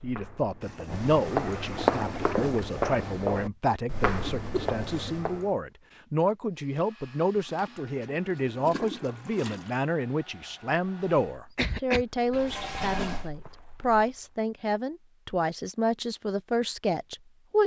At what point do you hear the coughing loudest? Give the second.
12 s.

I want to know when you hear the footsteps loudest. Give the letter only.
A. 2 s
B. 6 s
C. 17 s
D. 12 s
A.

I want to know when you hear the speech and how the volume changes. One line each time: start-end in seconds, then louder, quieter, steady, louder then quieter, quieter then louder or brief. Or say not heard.
0.0-17.6 steady.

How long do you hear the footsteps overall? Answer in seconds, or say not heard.
8 s.